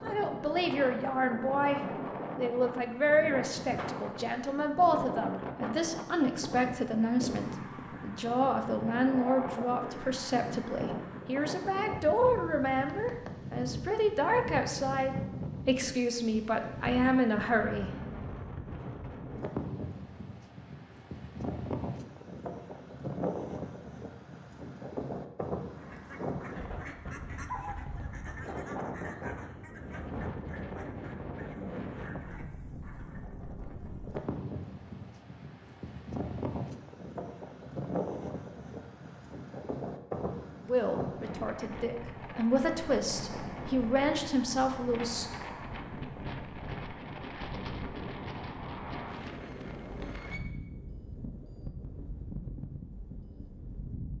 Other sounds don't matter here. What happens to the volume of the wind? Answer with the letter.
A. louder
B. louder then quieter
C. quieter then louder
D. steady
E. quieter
D.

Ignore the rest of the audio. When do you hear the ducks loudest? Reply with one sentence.
The loudest moment of the ducks is at 28 seconds.